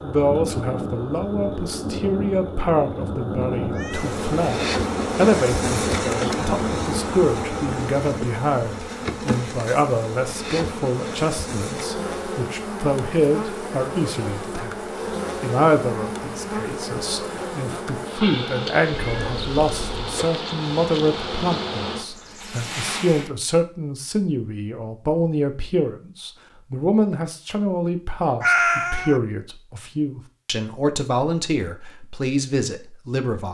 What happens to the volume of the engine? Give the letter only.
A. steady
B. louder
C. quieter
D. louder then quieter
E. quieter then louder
A.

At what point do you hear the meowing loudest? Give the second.
29 s.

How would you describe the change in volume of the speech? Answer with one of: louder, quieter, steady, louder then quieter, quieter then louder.
steady.